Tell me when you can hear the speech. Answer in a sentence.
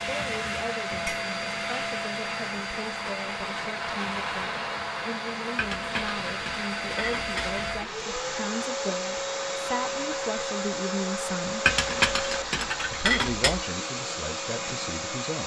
The speech can be heard from 0.1 to 11.8 s and from 12.9 to 15.4 s.